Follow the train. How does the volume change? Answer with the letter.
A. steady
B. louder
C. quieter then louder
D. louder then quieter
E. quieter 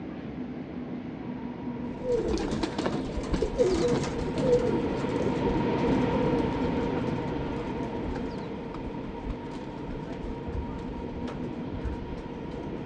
D.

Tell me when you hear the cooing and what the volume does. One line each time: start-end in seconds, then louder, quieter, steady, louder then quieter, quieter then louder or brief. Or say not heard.
1.9-12.8 quieter.